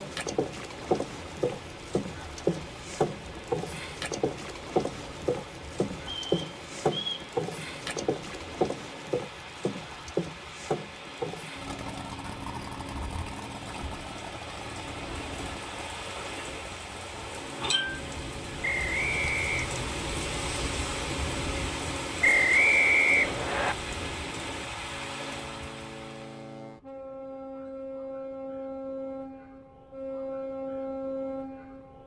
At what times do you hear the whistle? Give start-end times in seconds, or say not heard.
6.0-7.3, 18.6-19.7, 22.2-23.8.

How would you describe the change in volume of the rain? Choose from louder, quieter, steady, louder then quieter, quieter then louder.
louder.